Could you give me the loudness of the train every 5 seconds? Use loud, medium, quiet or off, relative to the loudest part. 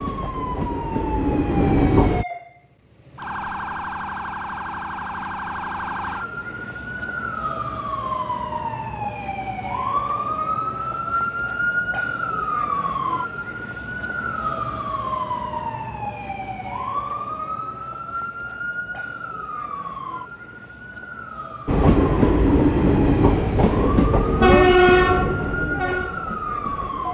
medium, off, off, off, loud, medium.